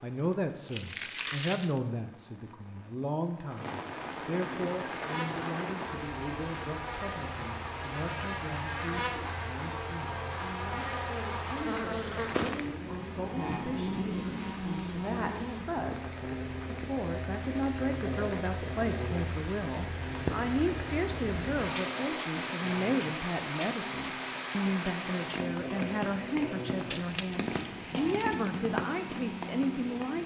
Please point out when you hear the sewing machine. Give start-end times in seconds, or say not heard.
not heard.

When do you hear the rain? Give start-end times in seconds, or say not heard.
0.0-30.2.